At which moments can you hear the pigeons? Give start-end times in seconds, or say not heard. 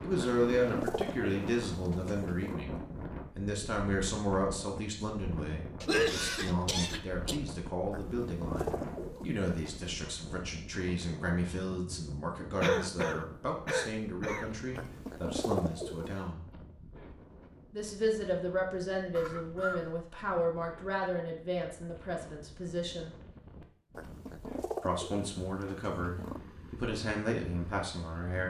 0.1-2.6, 7.9-9.8, 14.8-16.1, 23.9-26.4.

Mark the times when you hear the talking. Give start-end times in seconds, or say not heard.
0.0-16.5, 17.7-23.1, 24.8-28.4.